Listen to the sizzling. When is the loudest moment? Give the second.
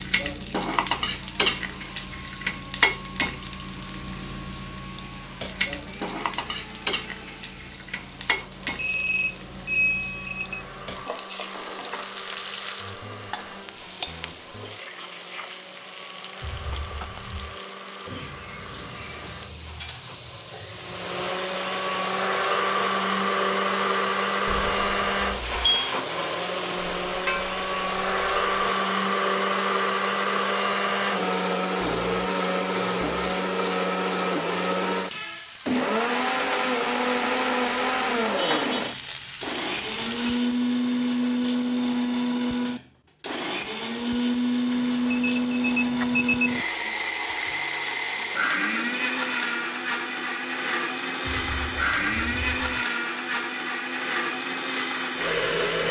1 s.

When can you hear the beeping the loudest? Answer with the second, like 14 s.
10 s.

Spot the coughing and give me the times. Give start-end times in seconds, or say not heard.
not heard.